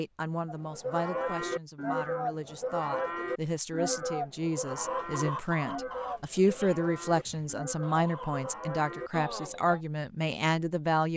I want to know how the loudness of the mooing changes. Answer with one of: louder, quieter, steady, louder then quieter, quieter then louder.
quieter.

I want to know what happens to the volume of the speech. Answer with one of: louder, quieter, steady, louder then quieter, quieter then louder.
louder.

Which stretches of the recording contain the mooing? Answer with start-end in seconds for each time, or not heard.
0.5-9.8.